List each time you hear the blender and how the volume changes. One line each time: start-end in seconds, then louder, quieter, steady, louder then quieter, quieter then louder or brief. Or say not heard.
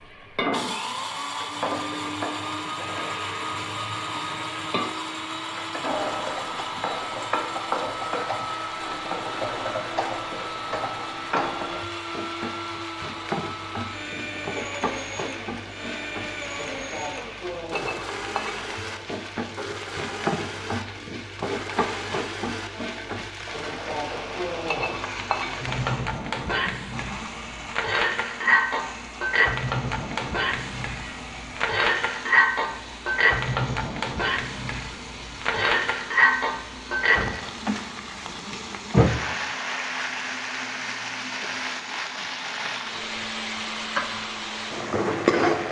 0.0-45.6 quieter.